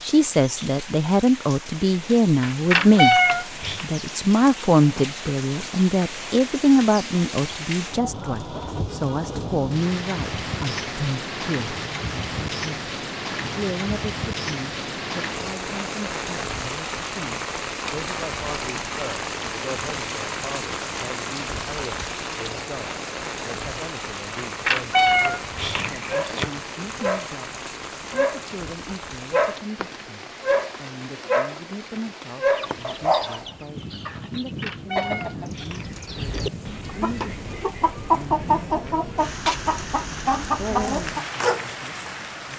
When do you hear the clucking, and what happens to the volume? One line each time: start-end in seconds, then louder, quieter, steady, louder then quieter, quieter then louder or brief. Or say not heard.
32.5-41.2 louder.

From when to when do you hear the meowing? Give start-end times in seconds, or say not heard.
2.4-3.9, 24.4-26.5, 34.3-36.5.